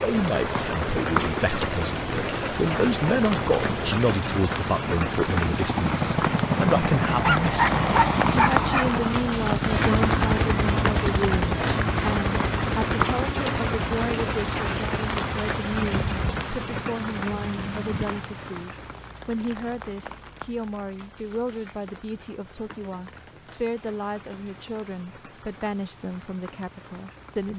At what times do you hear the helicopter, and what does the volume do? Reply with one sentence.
The helicopter can be heard from 0.0 to 18.4 s, getting louder then quieter.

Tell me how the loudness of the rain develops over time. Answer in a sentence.
The loudness of the rain goes down.